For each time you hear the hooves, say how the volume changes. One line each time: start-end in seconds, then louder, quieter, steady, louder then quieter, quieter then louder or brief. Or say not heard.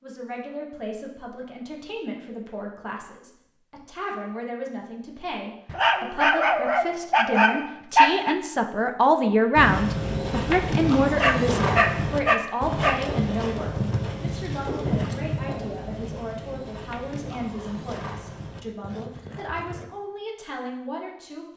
9.6-19.9 quieter.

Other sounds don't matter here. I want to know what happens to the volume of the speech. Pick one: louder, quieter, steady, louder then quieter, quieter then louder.
louder then quieter.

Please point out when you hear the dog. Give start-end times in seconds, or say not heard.
5.7-8.3, 11.2-13.0.